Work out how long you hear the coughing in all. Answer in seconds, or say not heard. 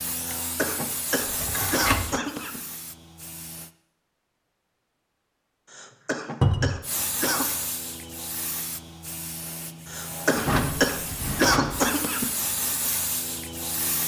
7 s.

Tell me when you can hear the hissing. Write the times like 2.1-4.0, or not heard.
0.0-3.7, 6.8-14.0.